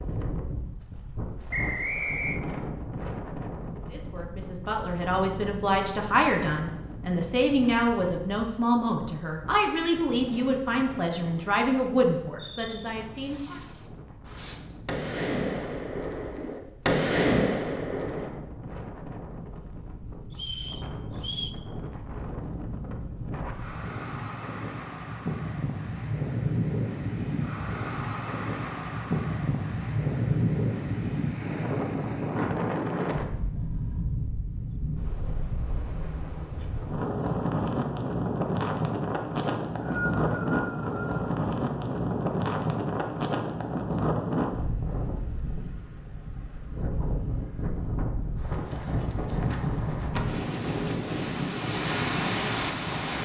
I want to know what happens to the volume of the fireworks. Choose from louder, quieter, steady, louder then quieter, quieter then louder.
louder.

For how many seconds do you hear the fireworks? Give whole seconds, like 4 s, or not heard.
6 s.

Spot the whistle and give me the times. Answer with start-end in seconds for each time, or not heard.
1.5-2.4, 20.4-21.5, 39.4-41.3.